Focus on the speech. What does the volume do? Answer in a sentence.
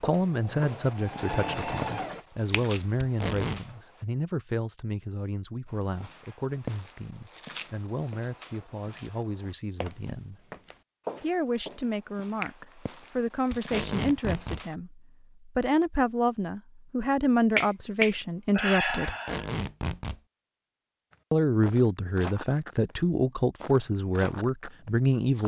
The loudness of the speech goes down, then up.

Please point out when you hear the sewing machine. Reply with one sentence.
The sewing machine can be heard from 0.1 to 2.2 s.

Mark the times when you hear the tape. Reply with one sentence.
You can hear the tape from 3.0 to 3.6 s, from 13.5 to 14.7 s and from 19.1 to 20.2 s.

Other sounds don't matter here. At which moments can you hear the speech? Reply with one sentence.
The speech can be heard from 0.0 to 10.3 s, from 11.2 to 19.1 s and from 21.3 to 25.4 s.